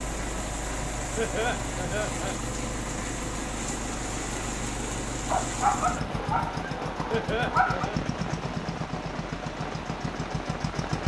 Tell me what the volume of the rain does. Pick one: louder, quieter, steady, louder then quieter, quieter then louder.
steady.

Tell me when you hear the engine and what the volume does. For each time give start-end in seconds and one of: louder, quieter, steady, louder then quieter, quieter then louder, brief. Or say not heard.
0.0-11.0 steady.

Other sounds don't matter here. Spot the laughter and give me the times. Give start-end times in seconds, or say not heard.
1.1-2.4, 7.1-8.0.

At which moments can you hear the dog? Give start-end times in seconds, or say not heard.
5.2-7.9.